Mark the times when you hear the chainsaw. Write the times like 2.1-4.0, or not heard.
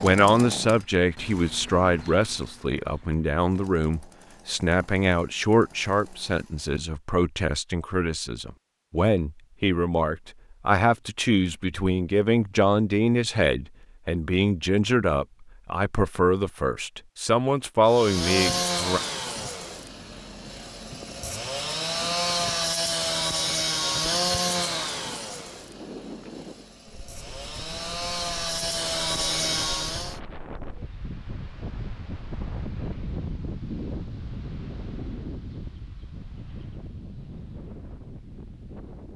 0.0-6.8, 17.9-30.2.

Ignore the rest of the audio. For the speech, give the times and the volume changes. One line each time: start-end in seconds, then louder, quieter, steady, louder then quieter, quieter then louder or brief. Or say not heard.
0.0-19.0 steady.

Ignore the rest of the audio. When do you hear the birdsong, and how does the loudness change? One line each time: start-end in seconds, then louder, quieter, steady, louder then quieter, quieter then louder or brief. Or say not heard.
not heard.